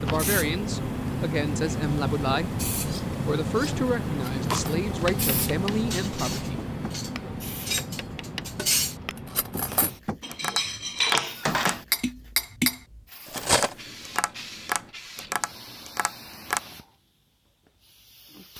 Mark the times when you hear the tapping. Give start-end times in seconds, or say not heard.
5.0-16.6.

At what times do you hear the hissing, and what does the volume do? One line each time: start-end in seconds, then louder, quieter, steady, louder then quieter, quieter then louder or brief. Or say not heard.
0.0-18.5 quieter.